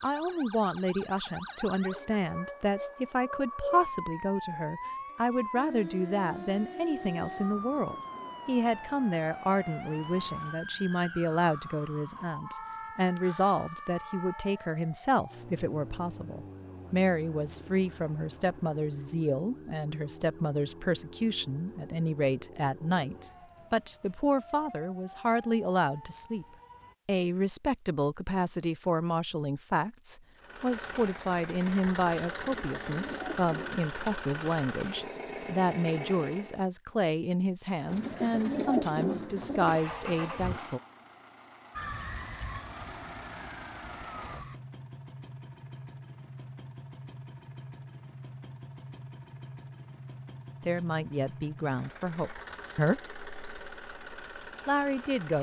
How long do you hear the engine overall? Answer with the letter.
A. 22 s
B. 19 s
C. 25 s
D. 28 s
A.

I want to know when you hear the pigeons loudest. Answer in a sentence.
The volume of the pigeons peaks at 39 seconds.